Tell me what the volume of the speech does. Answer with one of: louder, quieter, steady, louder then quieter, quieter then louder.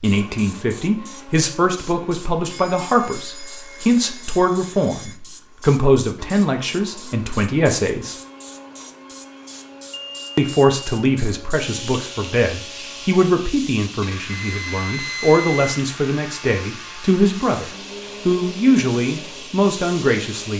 steady.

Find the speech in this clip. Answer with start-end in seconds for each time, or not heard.
0.0-8.2, 10.3-20.5.